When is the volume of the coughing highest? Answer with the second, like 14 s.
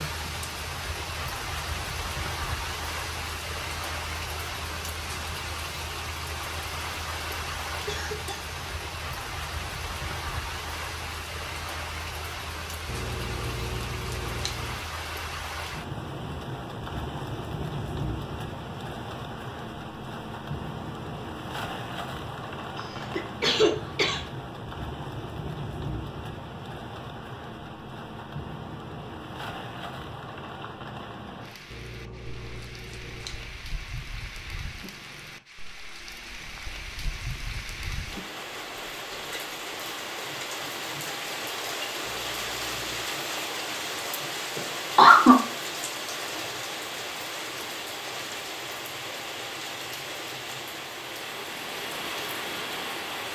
45 s.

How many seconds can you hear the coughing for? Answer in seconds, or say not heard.
3 s.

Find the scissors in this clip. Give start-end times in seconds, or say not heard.
12.8-14.8, 31.7-33.6, 42.0-43.1.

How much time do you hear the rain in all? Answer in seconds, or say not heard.
53 s.